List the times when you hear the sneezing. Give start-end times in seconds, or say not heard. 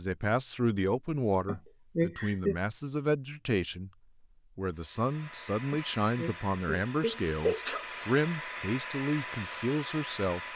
1.4-2.5, 5.7-7.8.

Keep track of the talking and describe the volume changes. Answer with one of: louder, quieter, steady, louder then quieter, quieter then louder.
steady.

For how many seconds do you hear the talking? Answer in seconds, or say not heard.
10 s.